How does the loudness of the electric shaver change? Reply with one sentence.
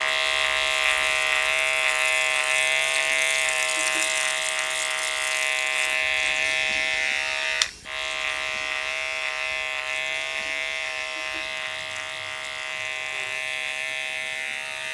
The volume of the electric shaver goes down.